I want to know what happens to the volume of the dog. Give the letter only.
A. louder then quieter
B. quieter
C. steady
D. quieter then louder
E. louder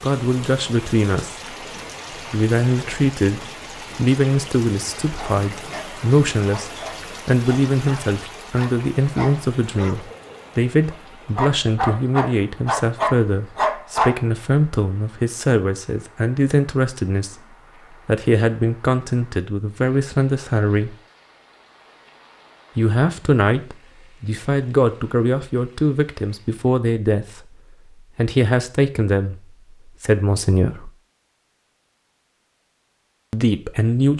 E.